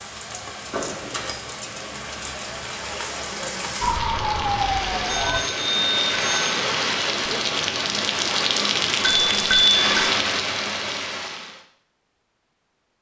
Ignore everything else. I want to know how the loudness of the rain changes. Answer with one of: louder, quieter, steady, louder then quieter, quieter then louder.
louder.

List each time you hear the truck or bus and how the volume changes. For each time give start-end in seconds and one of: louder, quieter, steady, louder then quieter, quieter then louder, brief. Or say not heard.
not heard.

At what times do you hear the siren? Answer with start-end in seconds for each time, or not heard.
3.8-5.4.